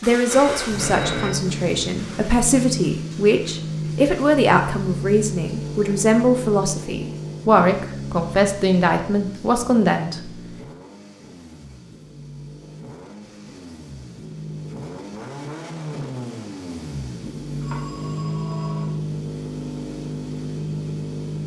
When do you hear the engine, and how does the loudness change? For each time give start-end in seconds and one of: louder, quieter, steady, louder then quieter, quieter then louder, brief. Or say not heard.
0.0-21.4 quieter then louder.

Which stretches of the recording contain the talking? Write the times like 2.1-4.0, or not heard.
0.0-10.3.